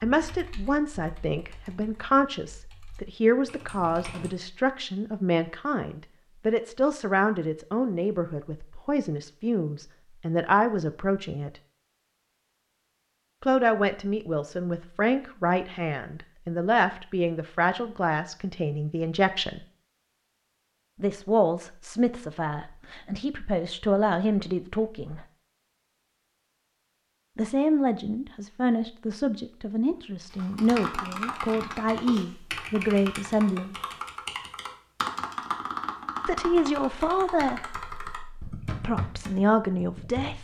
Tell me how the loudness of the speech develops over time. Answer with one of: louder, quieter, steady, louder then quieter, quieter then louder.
steady.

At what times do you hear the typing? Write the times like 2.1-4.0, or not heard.
0.1-4.3, 30.3-40.3.